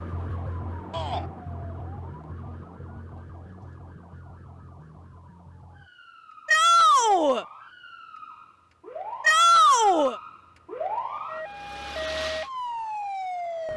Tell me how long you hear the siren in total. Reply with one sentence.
You can hear the siren for 14 seconds altogether.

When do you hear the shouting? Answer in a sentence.
The shouting can be heard from 0.9 to 1.3 s, from 6.5 to 7.5 s and from 9.2 to 10.2 s.